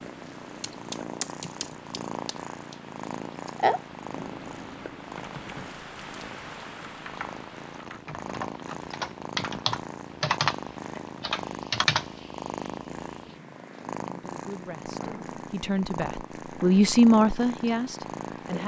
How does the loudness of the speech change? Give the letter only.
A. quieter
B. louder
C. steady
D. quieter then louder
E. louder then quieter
E.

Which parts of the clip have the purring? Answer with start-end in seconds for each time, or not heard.
0.0-18.6.